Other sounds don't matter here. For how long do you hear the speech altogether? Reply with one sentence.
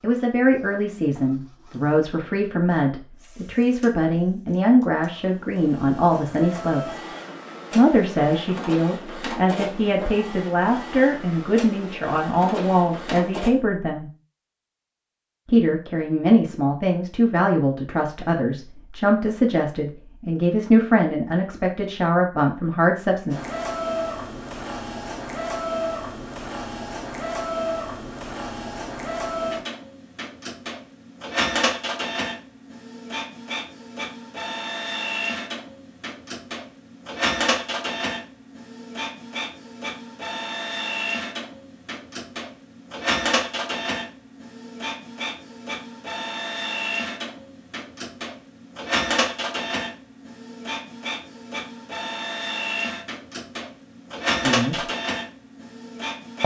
The speech can be heard for 22 seconds in total.